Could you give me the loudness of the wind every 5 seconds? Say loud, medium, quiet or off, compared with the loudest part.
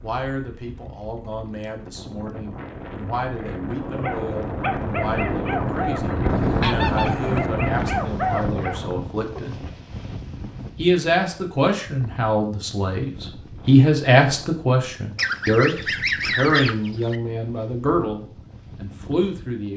medium, loud, quiet, quiet.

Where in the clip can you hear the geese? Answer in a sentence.
You can hear the geese from 6.2 to 7.5 s and from 15.2 to 17.1 s.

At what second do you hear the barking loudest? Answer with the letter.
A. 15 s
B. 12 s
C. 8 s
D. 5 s
C.